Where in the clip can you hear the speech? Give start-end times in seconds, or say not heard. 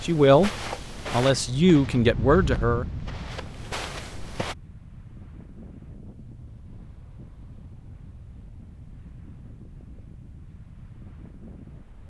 0.0-2.9.